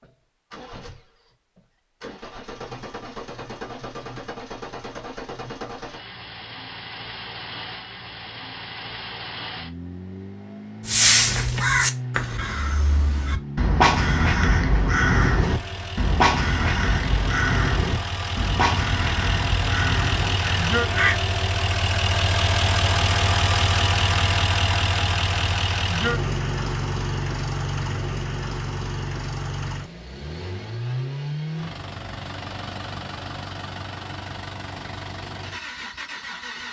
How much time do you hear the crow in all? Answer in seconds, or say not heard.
10 s.